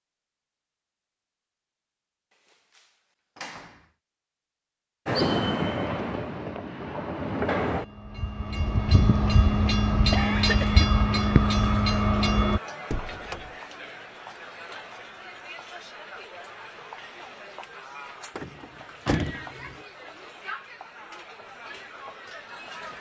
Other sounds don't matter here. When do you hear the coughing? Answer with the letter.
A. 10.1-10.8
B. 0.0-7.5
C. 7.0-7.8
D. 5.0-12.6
A.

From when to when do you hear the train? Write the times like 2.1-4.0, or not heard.
5.0-12.6.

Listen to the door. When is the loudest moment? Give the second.
19 s.